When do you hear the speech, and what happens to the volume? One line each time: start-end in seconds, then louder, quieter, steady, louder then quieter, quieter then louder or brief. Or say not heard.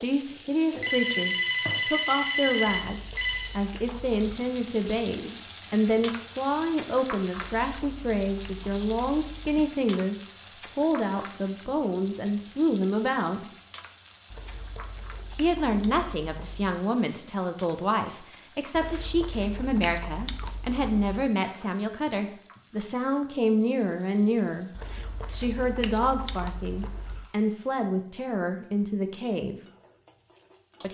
0.0-13.5 steady
15.3-29.6 steady.